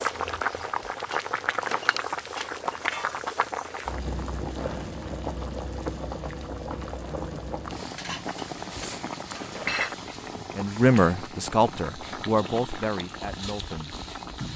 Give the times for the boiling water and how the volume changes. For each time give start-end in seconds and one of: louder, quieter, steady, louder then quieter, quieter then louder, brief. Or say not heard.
0.0-14.5 quieter.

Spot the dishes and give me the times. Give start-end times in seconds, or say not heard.
1.1-3.4, 8.0-9.9.